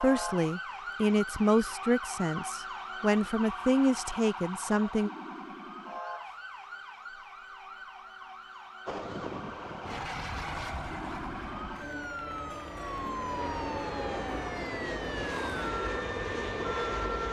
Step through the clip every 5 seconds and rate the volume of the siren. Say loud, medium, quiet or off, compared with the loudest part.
loud, medium, loud, loud.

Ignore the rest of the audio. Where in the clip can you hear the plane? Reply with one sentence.
You can hear the plane from 8.8 to 17.2 s.